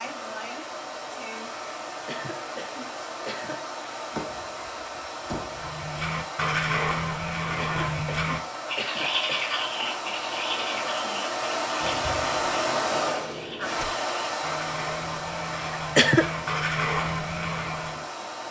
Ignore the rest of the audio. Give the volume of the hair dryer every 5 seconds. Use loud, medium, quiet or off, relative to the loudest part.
medium, medium, loud, medium.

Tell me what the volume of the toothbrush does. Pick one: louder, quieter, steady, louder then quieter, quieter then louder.
quieter then louder.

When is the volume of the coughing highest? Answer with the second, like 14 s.
16 s.